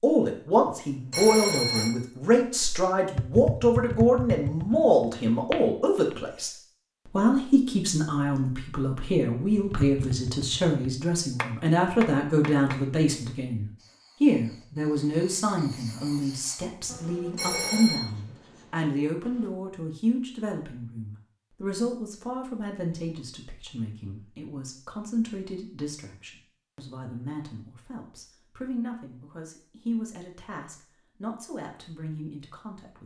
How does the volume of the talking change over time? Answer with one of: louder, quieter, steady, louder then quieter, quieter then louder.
quieter.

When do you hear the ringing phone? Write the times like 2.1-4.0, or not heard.
0.7-1.9, 16.9-18.0.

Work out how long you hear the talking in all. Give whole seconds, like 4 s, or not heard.
33 s.